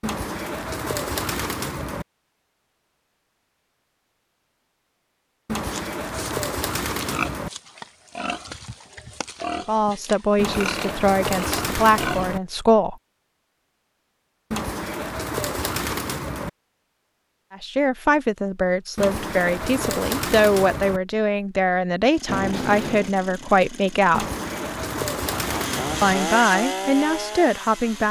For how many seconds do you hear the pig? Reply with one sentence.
You can hear the pig for 7 seconds altogether.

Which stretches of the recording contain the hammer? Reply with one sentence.
The hammer can't be heard in this clip.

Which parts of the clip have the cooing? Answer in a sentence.
You can hear the cooing from 0.0 to 2.0 s, from 5.5 to 7.5 s, from 10.3 to 12.4 s, from 14.5 to 16.5 s, from 18.9 to 21.0 s and from 24.1 to 26.1 s.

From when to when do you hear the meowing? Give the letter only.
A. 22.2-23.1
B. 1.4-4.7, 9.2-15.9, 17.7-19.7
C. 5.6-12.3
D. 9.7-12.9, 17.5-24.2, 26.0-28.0
A.